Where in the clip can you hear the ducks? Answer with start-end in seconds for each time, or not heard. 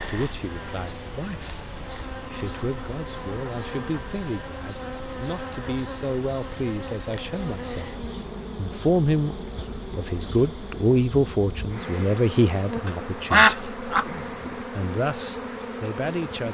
12.8-14.6.